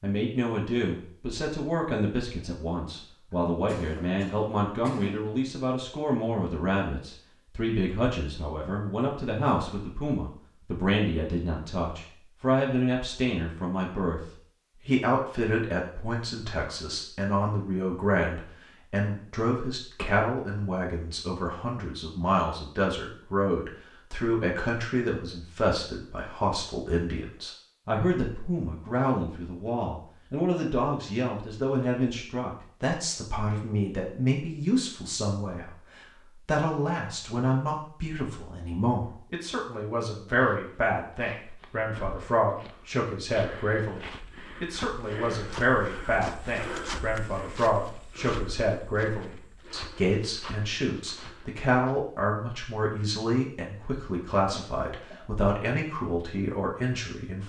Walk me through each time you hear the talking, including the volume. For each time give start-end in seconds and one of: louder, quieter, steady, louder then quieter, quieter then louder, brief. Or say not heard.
0.0-14.2 steady
14.8-57.4 steady.